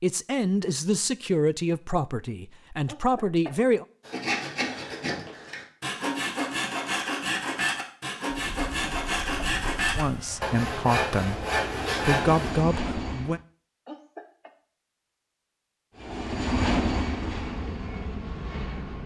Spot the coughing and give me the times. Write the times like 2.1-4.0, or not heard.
2.9-3.5, 8.8-9.7, 13.8-14.5.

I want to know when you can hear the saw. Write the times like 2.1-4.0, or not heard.
4.0-12.6.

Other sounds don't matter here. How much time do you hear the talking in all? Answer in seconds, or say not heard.
7 s.